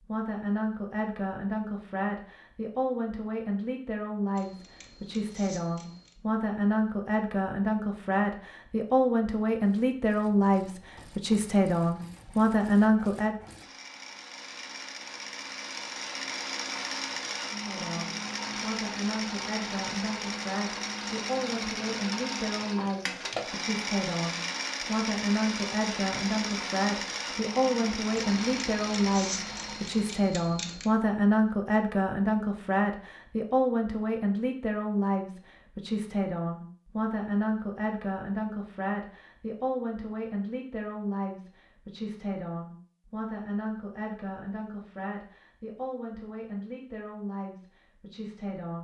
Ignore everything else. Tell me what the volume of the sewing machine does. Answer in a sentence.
The loudness of the sewing machine goes up.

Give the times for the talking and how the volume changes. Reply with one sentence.
The talking can be heard from 0.0 to 13.3 s, getting louder; and from 17.6 to 48.7 s, getting louder then quieter.